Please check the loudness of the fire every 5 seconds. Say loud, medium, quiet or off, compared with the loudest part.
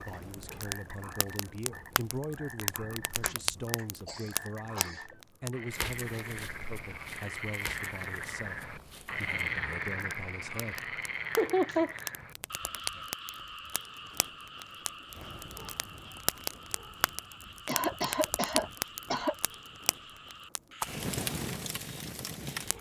loud, medium, medium, loud, loud.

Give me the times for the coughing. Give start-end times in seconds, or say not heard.
3.1-5.0, 11.3-11.9, 17.6-19.4.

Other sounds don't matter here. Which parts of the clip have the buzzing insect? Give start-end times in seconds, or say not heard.
not heard.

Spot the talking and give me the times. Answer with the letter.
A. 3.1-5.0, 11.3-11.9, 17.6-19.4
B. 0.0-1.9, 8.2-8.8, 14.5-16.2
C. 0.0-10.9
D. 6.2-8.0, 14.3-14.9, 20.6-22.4
C.